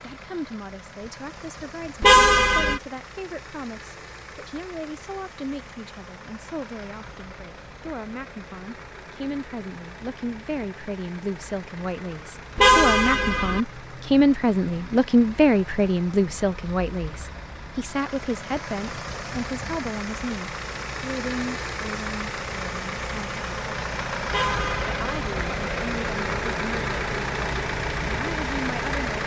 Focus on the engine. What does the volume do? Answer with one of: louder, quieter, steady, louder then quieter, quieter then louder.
louder.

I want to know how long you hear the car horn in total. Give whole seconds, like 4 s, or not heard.
3 s.